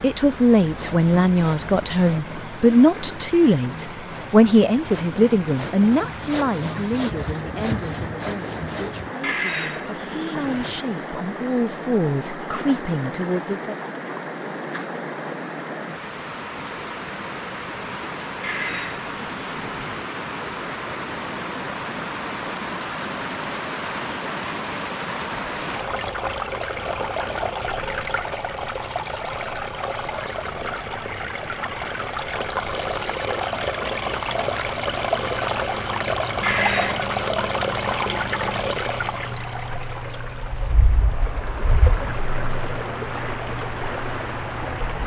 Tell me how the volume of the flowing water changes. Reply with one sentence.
The loudness of the flowing water goes up.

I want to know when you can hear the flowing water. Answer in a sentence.
You can hear the flowing water from 0.0 to 45.0 s.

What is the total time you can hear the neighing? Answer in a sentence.
You can hear the neighing for 4 seconds altogether.